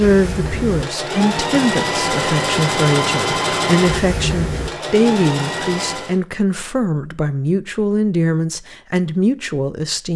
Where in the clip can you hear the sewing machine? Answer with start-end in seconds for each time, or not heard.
0.0-6.2.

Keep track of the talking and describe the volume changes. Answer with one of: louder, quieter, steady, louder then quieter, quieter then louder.
steady.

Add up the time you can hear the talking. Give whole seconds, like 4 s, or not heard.
10 s.